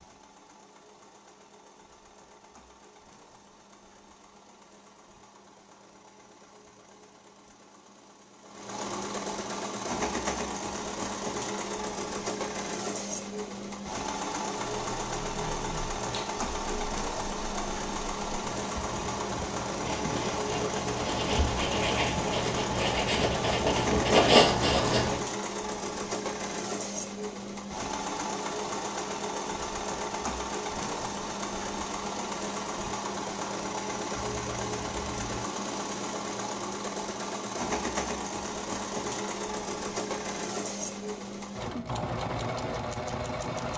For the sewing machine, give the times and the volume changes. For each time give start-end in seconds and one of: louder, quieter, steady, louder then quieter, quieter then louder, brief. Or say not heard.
0.0-43.7 louder.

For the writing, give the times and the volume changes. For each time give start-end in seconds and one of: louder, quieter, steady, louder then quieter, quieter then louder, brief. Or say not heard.
14.5-25.2 louder.